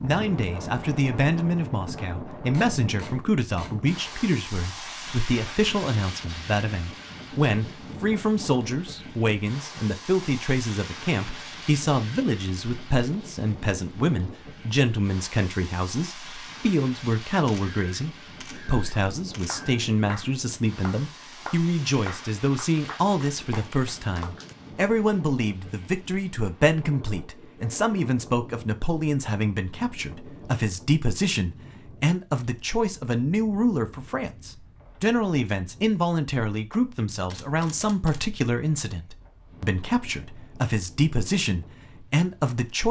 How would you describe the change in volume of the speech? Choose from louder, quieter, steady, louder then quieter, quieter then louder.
steady.